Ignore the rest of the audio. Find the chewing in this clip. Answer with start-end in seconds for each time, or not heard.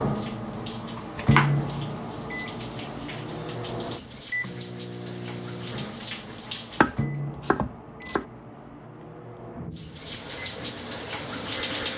not heard.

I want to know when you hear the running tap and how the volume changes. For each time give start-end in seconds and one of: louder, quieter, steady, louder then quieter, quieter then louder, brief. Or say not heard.
0.0-7.0 louder
9.8-11.9 brief.